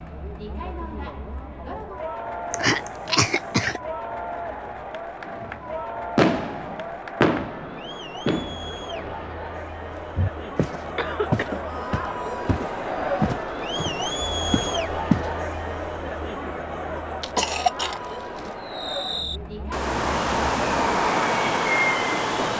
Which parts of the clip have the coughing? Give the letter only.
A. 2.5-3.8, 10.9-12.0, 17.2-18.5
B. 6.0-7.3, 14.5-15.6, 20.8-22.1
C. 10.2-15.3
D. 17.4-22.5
A.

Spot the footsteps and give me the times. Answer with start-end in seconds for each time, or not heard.
10.2-15.3.